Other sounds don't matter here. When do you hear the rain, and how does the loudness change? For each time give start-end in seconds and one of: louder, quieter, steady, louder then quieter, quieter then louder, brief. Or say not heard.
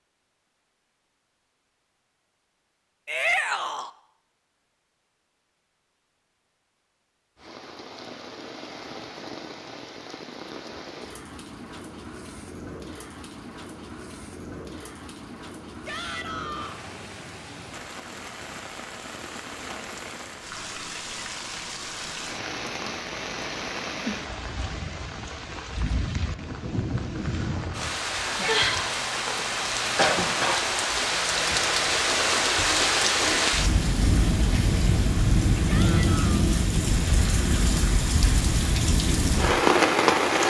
7.3-40.4 louder.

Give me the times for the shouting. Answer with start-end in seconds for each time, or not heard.
3.0-3.9, 15.8-16.8, 35.6-36.5.